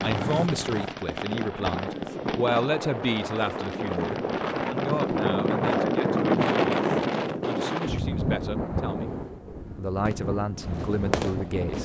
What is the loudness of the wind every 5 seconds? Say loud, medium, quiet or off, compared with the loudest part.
medium, loud, medium.